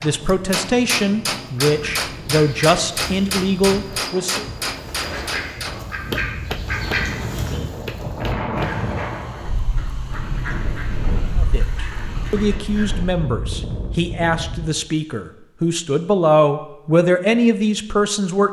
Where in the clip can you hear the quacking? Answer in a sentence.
The quacking can be heard from 1.6 to 13.1 s.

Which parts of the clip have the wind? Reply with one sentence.
You can hear the wind from 0.0 to 14.7 s.